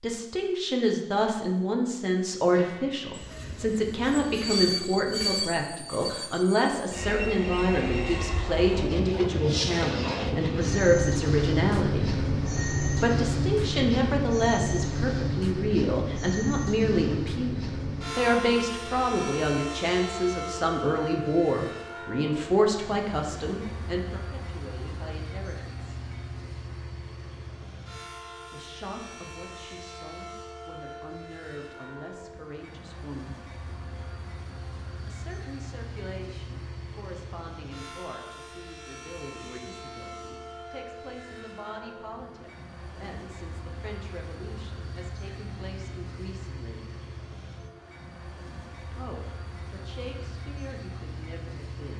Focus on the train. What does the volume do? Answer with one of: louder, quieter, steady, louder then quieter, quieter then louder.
quieter.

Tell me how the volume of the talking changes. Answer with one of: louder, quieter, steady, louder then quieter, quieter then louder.
quieter.